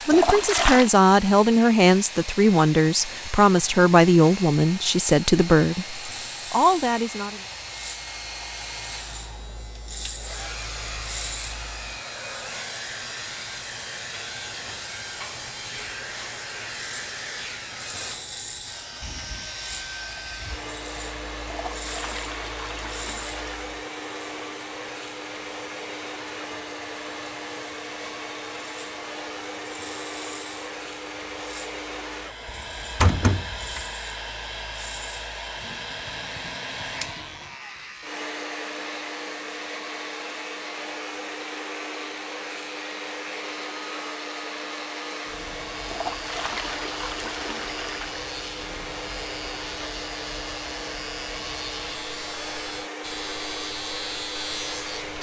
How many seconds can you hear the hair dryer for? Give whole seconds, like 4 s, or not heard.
55 s.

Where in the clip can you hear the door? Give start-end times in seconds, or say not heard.
32.5-33.9.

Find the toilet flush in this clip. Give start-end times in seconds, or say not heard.
0.1-0.9, 21.4-23.7, 45.9-48.2.